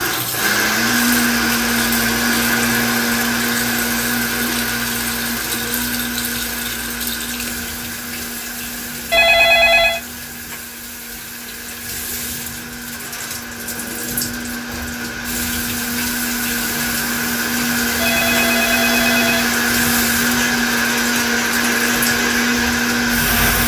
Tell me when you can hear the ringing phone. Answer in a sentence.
You can hear the ringing phone from 9.1 to 10.0 s and from 17.9 to 19.9 s.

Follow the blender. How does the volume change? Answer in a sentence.
The loudness of the blender goes down, then up.